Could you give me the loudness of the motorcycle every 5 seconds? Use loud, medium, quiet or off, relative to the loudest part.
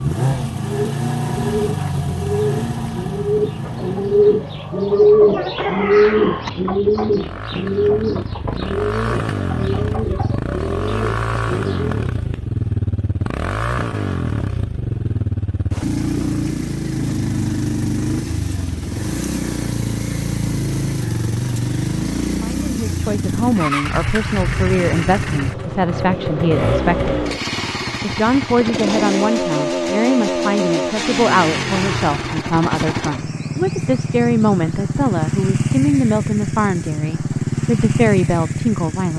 loud, medium, loud, loud, loud, loud, loud, loud.